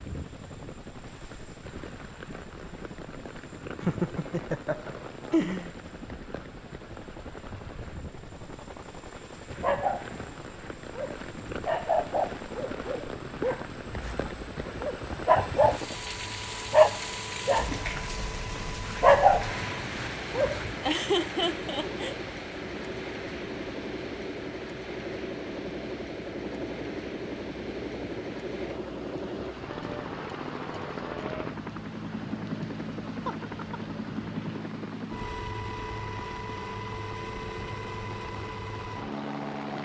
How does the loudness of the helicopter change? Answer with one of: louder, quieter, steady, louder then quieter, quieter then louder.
louder.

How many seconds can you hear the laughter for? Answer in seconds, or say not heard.
4 s.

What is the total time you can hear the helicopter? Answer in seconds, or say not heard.
40 s.